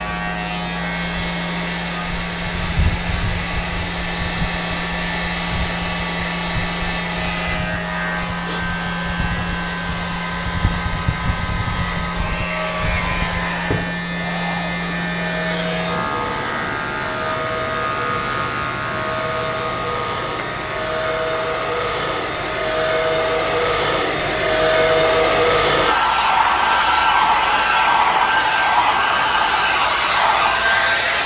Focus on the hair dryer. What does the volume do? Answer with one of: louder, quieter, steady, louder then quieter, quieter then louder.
louder.